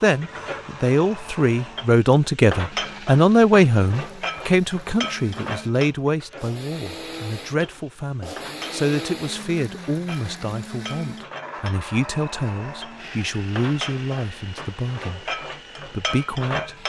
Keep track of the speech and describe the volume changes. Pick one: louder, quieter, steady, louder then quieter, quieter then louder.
quieter.